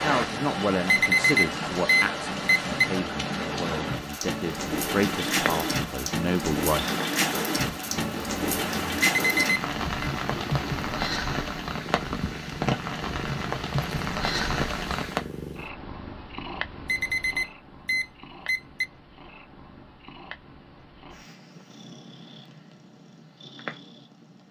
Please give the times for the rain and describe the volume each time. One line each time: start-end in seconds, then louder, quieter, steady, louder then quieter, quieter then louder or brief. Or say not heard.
0.0-15.2 steady.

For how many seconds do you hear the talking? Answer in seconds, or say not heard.
7 s.